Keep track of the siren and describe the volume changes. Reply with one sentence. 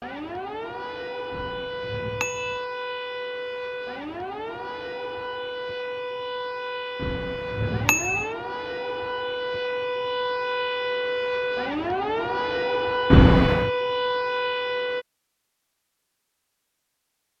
The loudness of the siren goes up.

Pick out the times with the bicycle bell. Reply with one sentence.
The bicycle bell can be heard from 1.3 to 2.6 s, from 7.0 to 8.3 s and from 13.1 to 13.7 s.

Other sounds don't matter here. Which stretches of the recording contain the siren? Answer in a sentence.
The siren can be heard from 0.0 to 15.1 s.